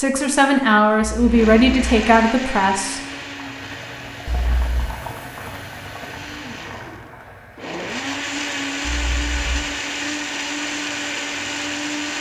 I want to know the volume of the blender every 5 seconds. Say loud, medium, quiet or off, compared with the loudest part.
medium, loud, loud.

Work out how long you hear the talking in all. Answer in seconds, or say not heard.
3 s.